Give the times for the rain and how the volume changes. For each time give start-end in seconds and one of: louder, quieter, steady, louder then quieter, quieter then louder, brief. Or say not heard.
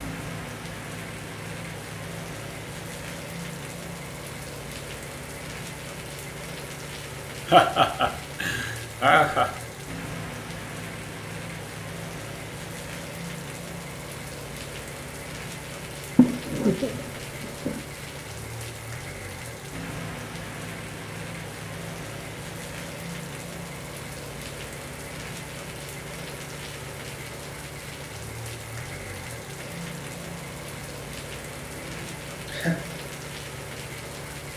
0.0-34.5 steady.